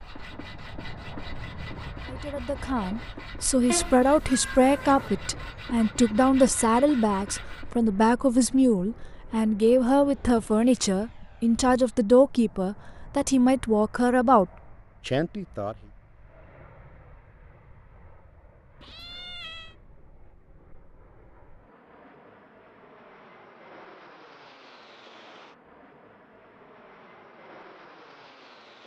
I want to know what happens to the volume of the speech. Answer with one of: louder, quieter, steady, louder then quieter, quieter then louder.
steady.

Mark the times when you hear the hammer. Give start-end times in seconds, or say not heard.
not heard.